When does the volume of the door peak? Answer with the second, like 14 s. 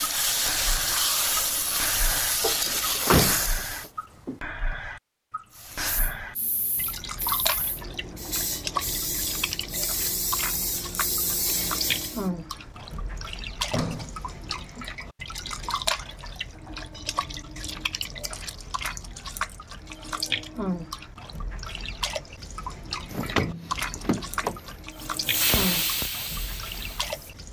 3 s.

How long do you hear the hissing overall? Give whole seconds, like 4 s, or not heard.
13 s.